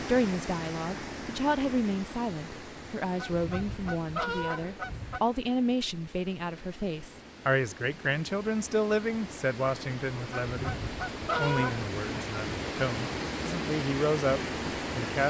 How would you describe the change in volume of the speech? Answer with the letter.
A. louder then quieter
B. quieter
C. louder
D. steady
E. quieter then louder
D.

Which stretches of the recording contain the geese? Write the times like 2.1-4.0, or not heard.
3.1-5.2, 10.3-11.8.